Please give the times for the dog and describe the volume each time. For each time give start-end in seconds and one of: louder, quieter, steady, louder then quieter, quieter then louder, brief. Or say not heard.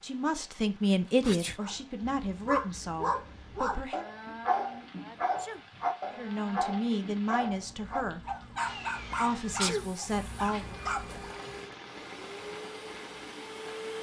1.6-11.4 steady.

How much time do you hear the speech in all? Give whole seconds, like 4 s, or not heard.
8 s.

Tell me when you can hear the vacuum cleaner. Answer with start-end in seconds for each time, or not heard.
8.6-13.9.